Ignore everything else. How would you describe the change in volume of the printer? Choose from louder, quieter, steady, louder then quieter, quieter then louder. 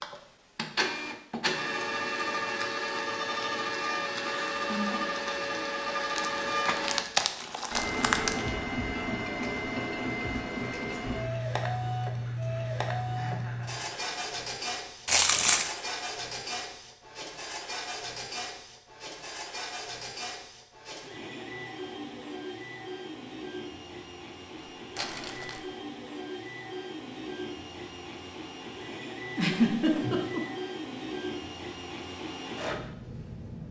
quieter.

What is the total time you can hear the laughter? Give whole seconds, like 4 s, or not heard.
3 s.